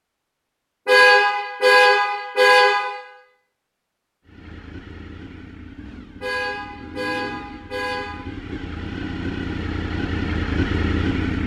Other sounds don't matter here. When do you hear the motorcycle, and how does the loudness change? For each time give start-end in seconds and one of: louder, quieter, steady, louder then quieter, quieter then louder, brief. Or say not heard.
4.2-11.4 louder.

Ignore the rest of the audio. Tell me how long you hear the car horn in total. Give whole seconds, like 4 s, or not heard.
4 s.